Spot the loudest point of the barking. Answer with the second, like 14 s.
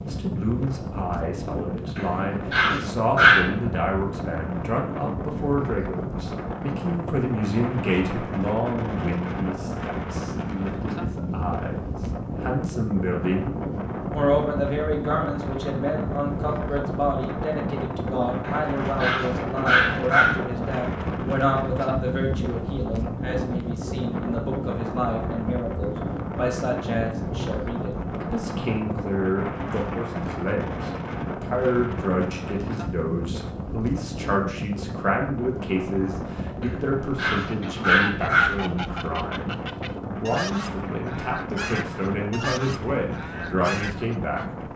3 s.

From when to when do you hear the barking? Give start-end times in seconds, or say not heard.
1.9-3.5, 18.4-20.4, 36.6-38.5.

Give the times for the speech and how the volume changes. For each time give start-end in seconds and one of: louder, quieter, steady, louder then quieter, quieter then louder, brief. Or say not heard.
0.0-44.5 steady.